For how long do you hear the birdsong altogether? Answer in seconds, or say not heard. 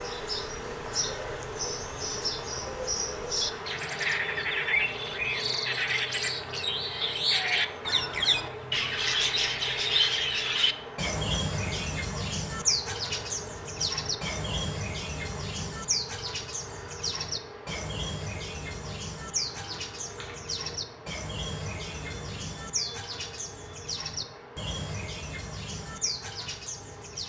27 s.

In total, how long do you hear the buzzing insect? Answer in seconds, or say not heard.
27 s.